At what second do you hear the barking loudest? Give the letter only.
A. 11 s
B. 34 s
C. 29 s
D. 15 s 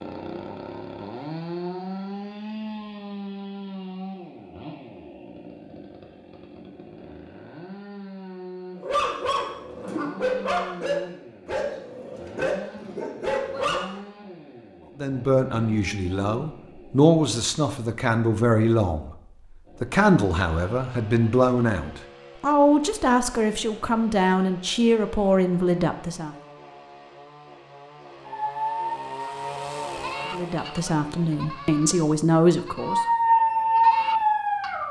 B.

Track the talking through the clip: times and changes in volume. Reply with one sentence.
You can hear the talking from 14.9 to 26.4 s, at a steady volume; and briefly from 30.3 to 33.0 s.